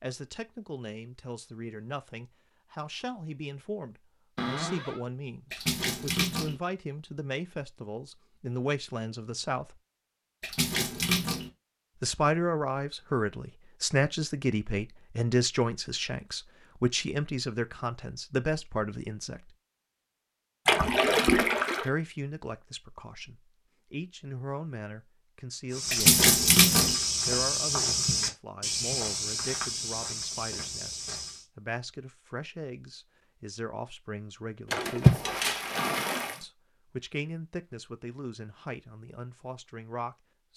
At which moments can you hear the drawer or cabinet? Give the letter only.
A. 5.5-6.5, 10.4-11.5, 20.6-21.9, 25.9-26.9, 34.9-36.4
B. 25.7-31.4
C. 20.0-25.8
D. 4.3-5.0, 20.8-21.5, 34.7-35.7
D.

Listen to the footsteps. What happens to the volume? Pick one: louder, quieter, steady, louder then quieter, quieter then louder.
quieter.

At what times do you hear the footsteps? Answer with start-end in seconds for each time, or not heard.
25.7-31.4.